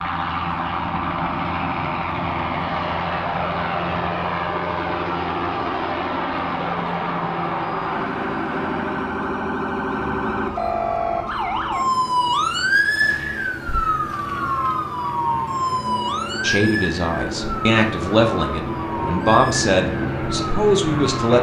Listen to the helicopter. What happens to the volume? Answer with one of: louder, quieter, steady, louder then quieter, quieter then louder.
quieter then louder.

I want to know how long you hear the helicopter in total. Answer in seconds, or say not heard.
21 s.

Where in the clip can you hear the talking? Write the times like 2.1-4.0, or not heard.
16.4-21.3.